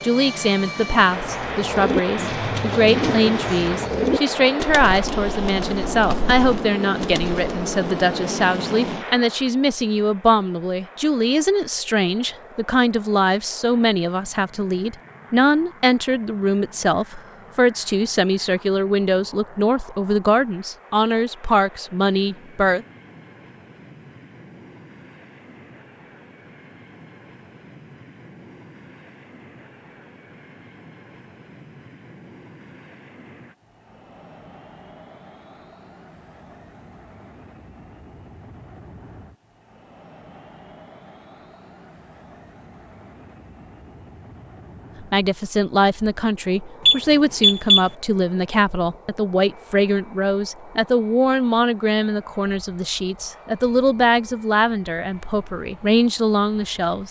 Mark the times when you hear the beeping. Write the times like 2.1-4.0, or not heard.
46.9-47.9.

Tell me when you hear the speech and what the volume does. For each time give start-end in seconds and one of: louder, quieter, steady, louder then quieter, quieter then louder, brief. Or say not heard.
0.0-22.9 steady
45.0-57.0 steady.